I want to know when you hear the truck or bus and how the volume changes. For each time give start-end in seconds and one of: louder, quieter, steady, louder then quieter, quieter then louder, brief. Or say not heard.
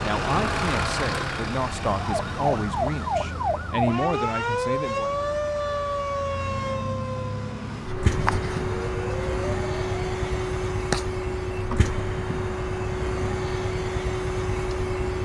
0.0-15.2 quieter then louder.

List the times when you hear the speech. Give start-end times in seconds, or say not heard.
0.0-5.1.